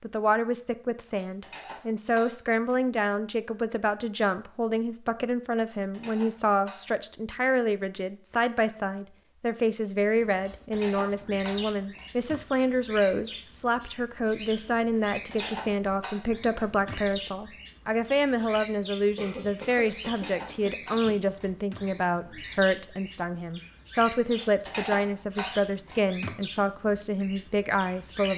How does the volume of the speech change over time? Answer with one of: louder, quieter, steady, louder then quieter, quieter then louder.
steady.